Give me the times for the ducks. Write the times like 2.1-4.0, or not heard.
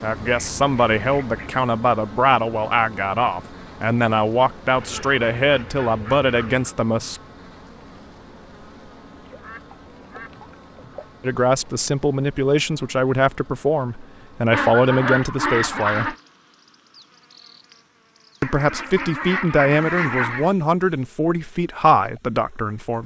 0.2-1.6, 4.8-6.7, 9.2-11.1, 14.5-16.1, 18.4-20.5.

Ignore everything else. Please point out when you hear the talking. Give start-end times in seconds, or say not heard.
0.0-7.2, 11.2-16.1, 18.4-23.0.